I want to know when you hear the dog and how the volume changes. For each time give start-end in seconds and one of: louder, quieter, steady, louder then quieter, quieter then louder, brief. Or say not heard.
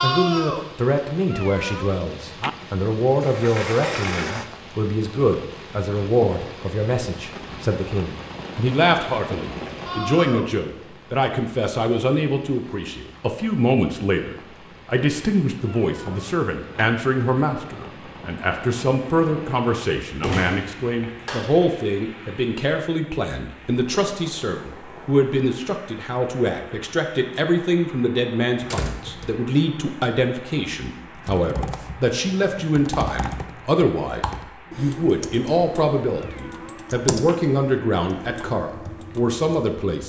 not heard.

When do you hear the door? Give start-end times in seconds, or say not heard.
3.2-4.5, 20.0-21.6, 28.6-29.3.